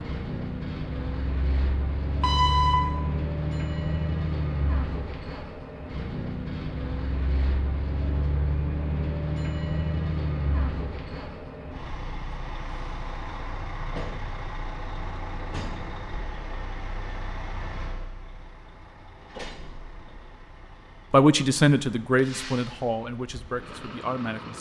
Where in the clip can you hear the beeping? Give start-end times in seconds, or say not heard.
2.2-2.8.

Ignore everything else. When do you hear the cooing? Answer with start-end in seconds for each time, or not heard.
not heard.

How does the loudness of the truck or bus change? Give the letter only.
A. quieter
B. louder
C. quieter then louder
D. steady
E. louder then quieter
A.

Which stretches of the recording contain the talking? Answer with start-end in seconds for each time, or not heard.
21.1-24.5.